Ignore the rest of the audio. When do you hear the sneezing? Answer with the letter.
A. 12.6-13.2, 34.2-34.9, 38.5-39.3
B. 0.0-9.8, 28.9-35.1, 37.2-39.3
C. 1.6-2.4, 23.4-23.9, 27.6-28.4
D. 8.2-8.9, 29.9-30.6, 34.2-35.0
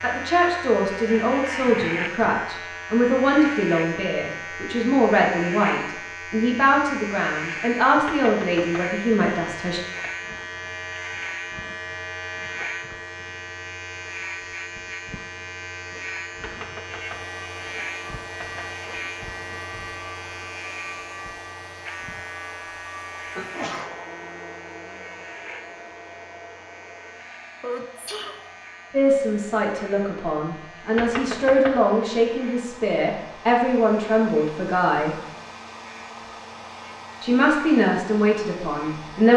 C.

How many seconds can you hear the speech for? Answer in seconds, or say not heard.
18 s.